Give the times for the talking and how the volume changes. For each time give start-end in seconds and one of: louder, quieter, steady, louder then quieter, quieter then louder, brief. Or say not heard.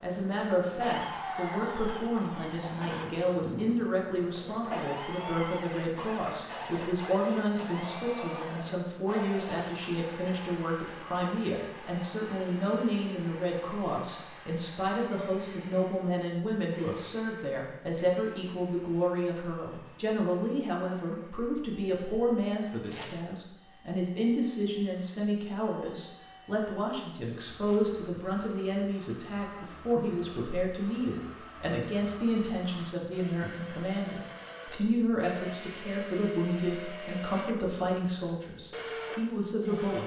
0.0-40.0 steady.